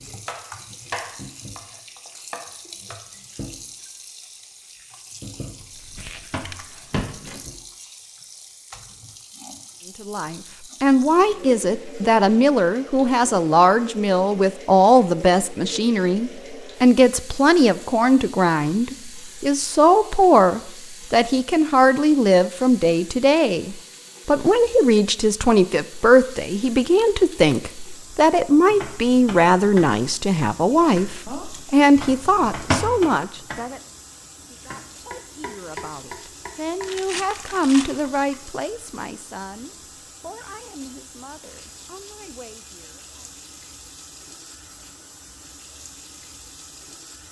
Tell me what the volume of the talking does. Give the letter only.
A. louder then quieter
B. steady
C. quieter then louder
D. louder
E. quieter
E.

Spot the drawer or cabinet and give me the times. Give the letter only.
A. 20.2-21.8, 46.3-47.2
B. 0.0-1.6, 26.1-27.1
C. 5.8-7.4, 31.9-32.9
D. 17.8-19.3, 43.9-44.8
C.